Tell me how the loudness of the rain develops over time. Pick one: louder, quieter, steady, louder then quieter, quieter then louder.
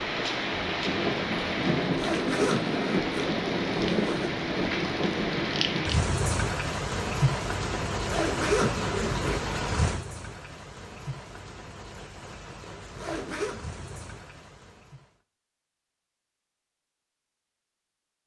quieter.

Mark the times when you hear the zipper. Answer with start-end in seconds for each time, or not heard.
1.9-4.3, 8.0-9.4, 12.6-13.6.